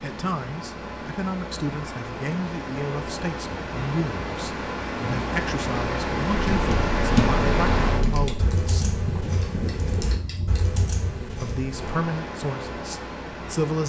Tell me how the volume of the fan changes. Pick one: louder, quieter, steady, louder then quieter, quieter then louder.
louder then quieter.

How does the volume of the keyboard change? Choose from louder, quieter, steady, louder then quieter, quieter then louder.
quieter.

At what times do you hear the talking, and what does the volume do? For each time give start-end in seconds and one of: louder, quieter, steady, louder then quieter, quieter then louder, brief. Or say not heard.
0.0-8.9 steady
11.4-13.8 brief.